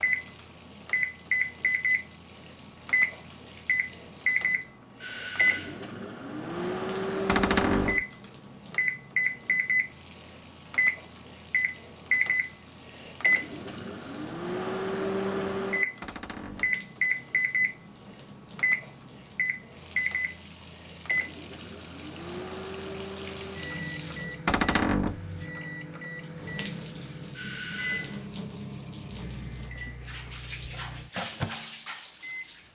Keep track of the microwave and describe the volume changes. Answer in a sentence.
The volume of the microwave goes down.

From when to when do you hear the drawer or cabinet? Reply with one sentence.
The drawer or cabinet can be heard from 7.2 to 8.1 s, from 16.0 to 16.8 s and from 24.4 to 25.2 s.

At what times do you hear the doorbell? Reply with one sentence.
The doorbell can be heard from 5.0 to 6.0 s and from 27.4 to 28.3 s.